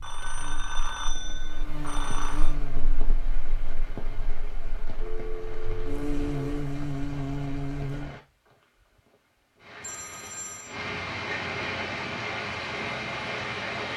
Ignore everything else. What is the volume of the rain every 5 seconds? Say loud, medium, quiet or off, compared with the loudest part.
quiet, quiet, loud.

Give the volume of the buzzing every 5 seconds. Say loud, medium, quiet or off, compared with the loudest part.
quiet, loud, off.